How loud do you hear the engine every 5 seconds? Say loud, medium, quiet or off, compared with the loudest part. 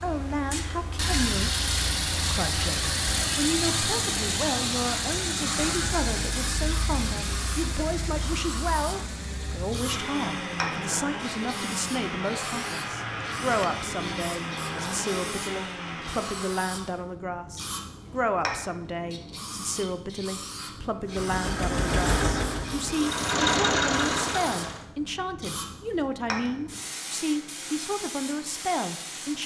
loud, medium, medium, medium, loud, off.